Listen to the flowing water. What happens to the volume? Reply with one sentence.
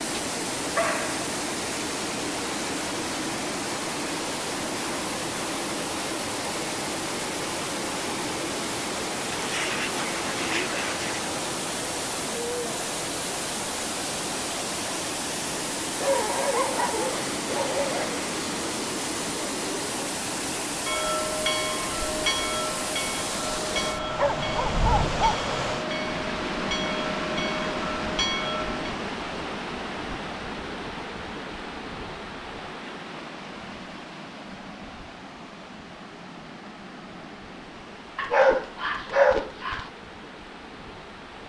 The loudness of the flowing water goes down.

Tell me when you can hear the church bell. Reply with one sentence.
You can hear the church bell from 20.9 to 28.9 s.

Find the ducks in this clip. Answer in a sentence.
The ducks can be heard from 9.3 to 11.2 s.